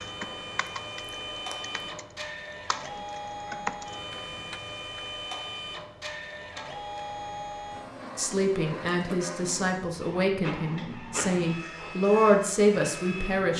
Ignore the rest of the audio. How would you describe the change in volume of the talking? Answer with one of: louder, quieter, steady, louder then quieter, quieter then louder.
louder.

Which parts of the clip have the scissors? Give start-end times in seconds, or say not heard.
0.2-2.0.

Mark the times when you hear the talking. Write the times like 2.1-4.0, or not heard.
8.2-13.5.